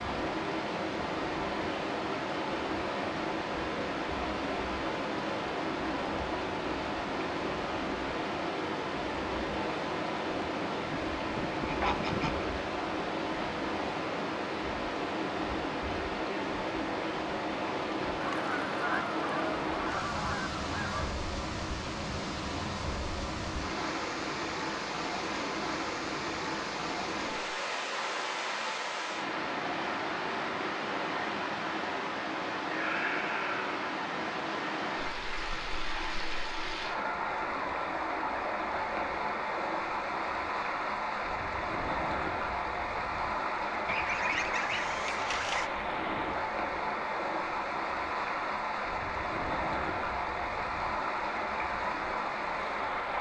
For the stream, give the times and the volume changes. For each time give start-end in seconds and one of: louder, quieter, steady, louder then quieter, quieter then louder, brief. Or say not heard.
0.0-53.1 steady.